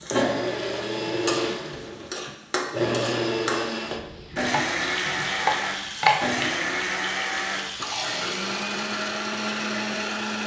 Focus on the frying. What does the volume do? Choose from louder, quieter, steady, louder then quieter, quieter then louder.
steady.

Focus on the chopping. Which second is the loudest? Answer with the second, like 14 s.
6 s.